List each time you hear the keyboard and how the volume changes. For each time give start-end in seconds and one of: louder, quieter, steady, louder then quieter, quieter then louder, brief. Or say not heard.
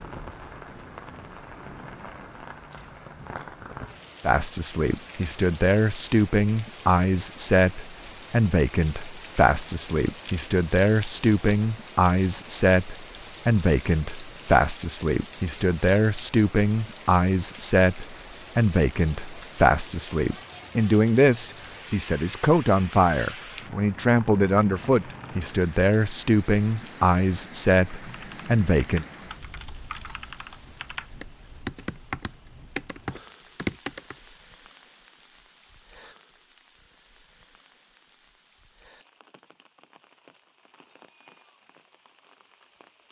28.1-34.1 louder.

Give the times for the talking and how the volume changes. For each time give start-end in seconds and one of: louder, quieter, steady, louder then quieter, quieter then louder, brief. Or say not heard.
4.2-29.1 steady.